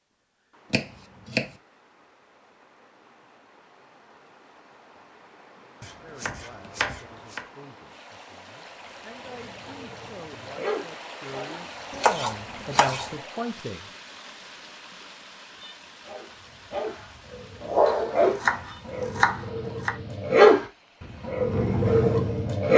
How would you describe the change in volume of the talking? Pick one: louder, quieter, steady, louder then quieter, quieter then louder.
louder.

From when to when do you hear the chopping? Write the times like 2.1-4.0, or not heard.
0.7-1.6, 5.8-7.5, 11.9-13.1, 17.9-19.9.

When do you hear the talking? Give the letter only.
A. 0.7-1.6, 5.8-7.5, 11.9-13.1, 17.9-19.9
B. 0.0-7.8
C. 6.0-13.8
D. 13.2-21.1
C.